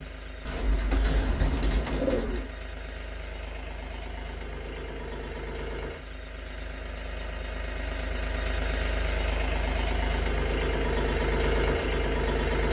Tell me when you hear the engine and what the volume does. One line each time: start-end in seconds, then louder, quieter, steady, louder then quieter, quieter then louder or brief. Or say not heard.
0.0-12.6 louder.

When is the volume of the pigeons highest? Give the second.
2 s.